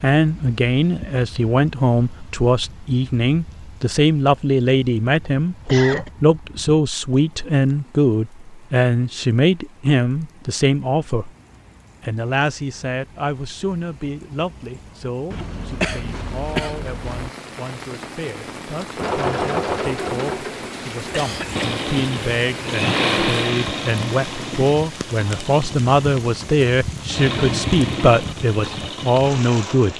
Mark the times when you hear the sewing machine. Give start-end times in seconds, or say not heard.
18.9-29.9.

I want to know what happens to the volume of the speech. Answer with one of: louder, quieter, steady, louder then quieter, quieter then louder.
quieter then louder.